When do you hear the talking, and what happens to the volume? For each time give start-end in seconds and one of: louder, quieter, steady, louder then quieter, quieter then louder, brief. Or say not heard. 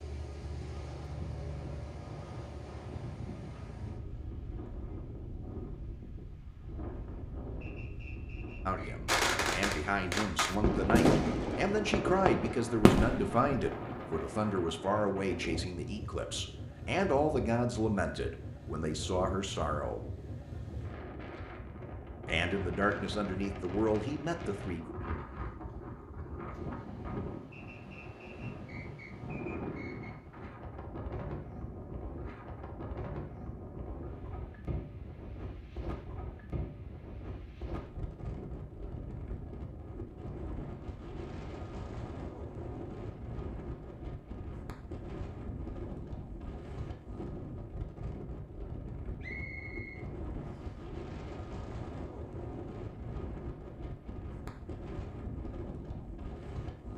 8.7-20.1 steady
22.2-24.9 brief.